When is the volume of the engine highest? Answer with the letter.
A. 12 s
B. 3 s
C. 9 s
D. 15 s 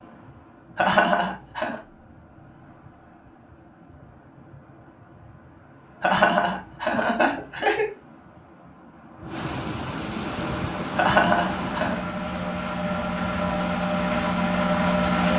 D.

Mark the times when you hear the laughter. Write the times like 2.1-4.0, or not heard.
0.8-1.8, 6.0-7.9, 10.9-12.0.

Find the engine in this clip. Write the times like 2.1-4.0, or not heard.
10.2-15.3.